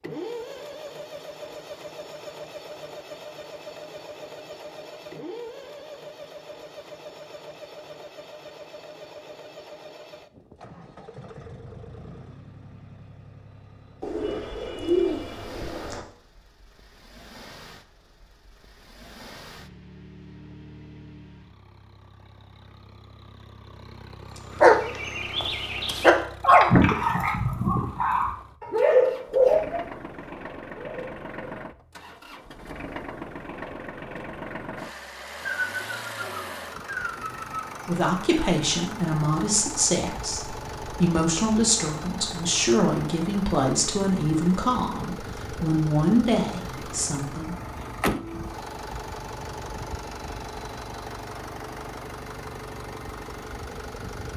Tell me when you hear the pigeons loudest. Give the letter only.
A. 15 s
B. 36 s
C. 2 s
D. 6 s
A.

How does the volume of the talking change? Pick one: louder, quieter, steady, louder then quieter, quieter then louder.
steady.